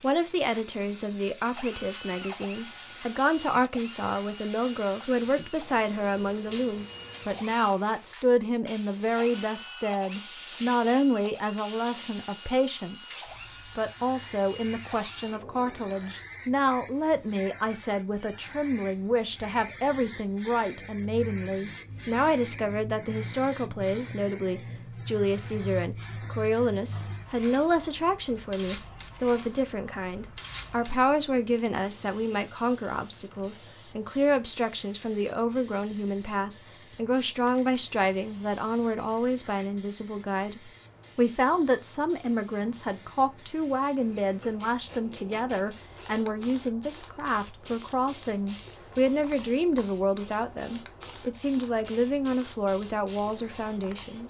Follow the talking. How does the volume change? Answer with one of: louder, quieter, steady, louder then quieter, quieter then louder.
steady.